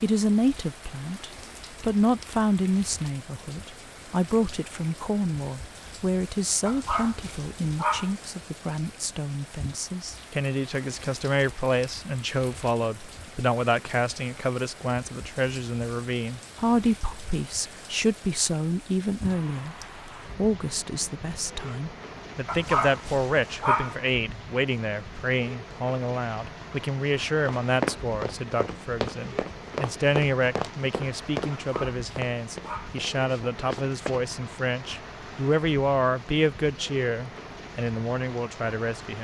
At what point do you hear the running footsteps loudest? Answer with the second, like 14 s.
28 s.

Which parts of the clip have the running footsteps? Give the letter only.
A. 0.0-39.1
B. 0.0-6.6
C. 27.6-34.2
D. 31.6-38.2
C.